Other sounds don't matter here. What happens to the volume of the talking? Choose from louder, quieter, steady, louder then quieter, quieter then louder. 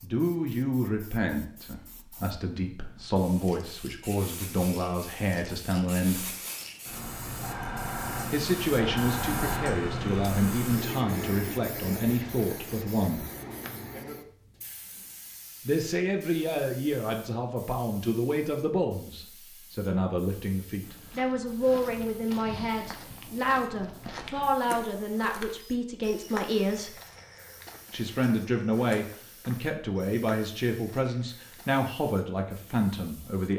steady.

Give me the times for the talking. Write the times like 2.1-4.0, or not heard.
0.0-6.3, 8.3-13.2, 15.7-26.9, 27.9-33.5.